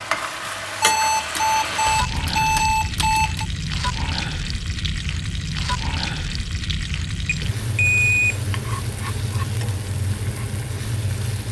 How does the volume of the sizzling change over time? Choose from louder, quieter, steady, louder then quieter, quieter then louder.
steady.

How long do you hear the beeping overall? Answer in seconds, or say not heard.
4 s.